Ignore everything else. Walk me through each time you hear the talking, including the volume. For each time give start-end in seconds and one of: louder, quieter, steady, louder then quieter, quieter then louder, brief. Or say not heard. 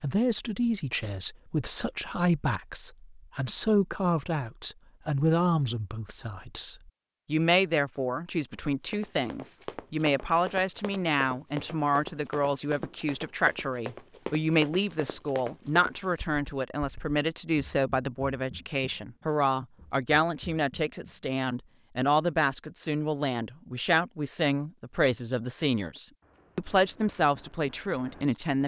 0.0-28.6 steady.